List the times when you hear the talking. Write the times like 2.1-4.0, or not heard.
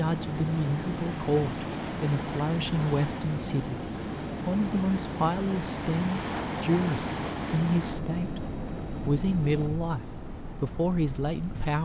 0.0-3.8, 4.5-8.4, 9.1-11.7.